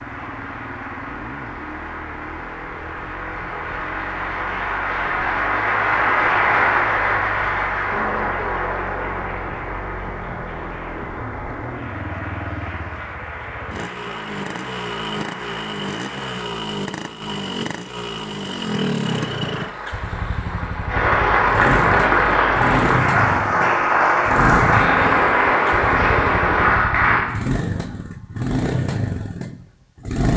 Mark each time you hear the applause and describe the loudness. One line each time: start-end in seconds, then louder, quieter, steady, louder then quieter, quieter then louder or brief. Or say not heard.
0.0-16.4 louder then quieter
19.0-27.2 louder.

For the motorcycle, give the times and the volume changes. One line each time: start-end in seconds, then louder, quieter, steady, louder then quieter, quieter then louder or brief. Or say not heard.
0.0-30.3 louder.